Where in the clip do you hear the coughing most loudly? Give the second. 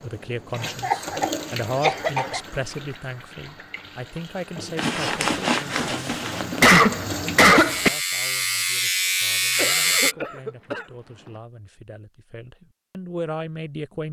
7 s.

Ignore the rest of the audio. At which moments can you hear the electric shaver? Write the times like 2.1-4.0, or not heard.
7.5-10.2.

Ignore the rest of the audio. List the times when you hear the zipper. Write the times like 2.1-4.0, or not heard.
4.8-6.7.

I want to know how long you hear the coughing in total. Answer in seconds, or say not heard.
5 s.